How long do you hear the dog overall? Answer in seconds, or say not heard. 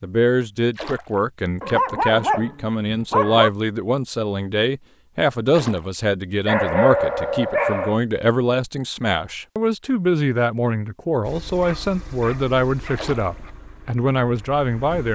5 s.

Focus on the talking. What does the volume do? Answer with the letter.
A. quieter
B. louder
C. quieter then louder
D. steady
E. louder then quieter
D.